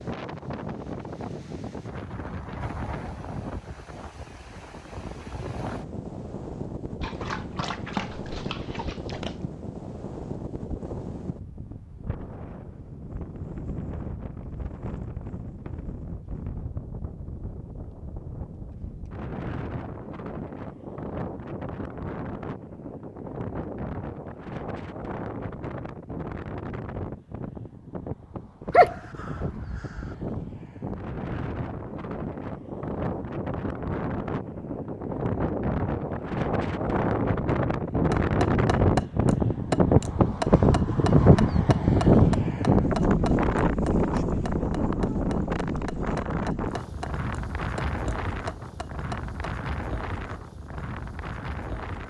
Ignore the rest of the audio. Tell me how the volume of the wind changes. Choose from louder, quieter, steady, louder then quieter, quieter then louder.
louder.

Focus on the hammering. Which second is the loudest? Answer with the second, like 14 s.
40 s.